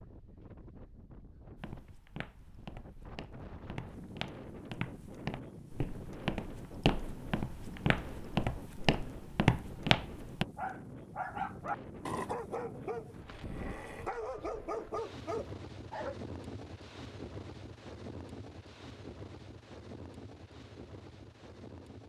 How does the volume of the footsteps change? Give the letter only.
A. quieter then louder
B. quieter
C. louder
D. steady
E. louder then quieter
C.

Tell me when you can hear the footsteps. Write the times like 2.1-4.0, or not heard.
1.6-10.4.